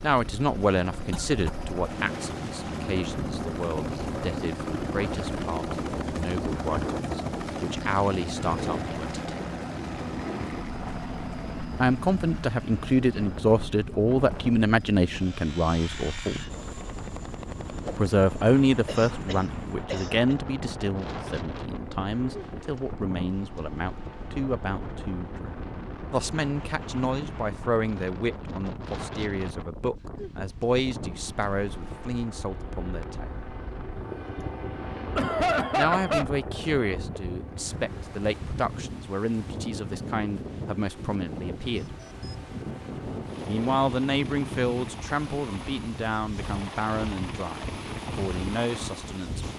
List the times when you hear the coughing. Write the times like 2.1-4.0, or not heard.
1.1-1.6, 18.9-20.4, 35.1-36.2.